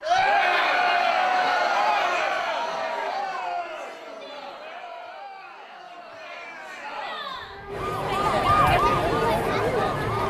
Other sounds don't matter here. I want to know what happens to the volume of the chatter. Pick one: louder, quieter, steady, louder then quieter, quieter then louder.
quieter then louder.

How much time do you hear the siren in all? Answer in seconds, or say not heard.
3 s.